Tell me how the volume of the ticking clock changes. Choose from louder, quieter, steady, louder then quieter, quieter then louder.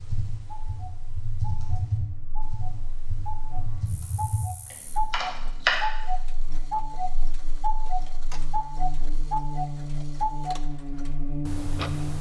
louder.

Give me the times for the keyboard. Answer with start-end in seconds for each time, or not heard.
0.0-5.8.